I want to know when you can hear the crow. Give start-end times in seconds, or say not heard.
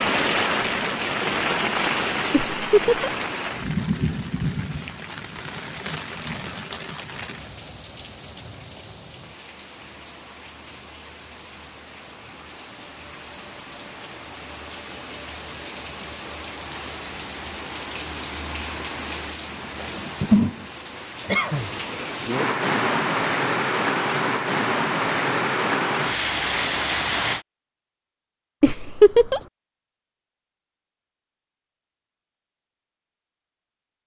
not heard.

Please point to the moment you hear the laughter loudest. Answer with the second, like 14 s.
29 s.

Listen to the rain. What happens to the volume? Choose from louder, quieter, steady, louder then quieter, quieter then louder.
quieter then louder.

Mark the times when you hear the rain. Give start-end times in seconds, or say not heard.
0.0-27.4.